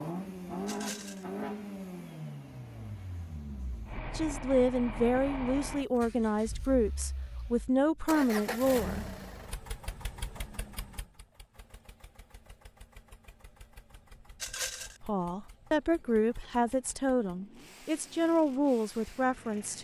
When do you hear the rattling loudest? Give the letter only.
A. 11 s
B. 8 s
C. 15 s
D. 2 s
C.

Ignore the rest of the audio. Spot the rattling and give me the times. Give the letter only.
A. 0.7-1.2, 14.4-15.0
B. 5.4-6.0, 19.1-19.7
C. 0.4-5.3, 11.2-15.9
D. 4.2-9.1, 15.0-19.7
A.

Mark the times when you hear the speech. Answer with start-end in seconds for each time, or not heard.
4.2-9.1, 15.0-19.7.